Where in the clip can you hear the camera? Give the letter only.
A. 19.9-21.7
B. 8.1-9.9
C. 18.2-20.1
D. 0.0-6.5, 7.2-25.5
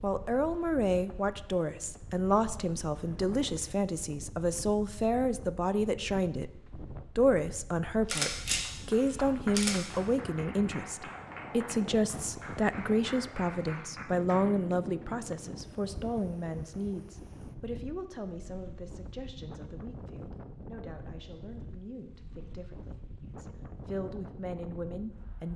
B.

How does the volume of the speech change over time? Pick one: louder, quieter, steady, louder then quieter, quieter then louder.
quieter.